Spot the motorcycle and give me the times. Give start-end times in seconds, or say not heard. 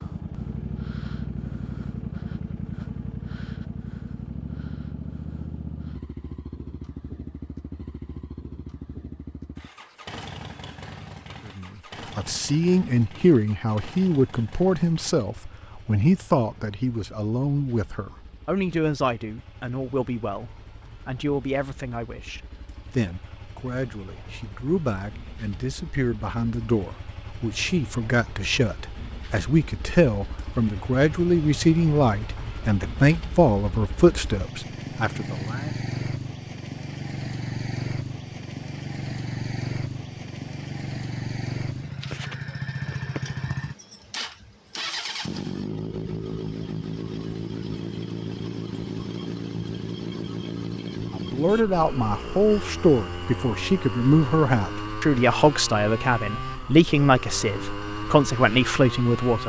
0.0-59.4.